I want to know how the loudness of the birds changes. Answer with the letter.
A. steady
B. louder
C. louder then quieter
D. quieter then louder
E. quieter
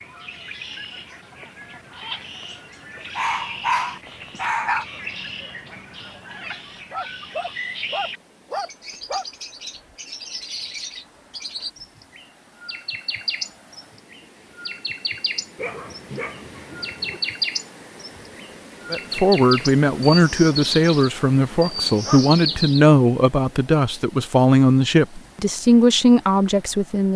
B.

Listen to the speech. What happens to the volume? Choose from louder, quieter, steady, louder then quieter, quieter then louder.
steady.